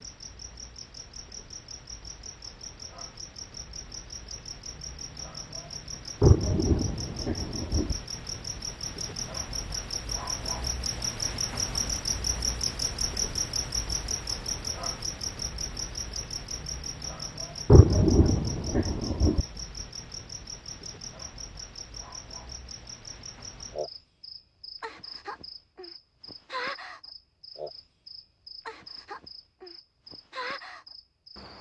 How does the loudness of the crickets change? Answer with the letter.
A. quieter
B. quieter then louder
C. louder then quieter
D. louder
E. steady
C.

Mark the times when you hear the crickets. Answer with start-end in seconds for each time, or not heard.
0.0-31.5.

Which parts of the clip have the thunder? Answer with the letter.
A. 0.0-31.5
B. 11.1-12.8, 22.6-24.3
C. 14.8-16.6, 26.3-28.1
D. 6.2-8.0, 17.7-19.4
D.